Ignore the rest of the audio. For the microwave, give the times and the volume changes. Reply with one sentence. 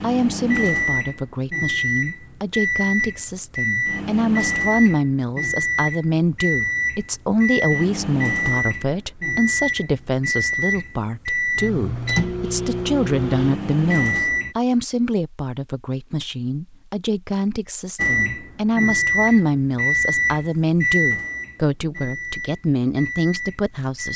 The microwave can be heard from 0.0 to 14.6 s, at a steady volume; and from 17.9 to 24.1 s, getting quieter.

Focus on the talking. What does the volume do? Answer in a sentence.
The loudness of the talking stays about the same.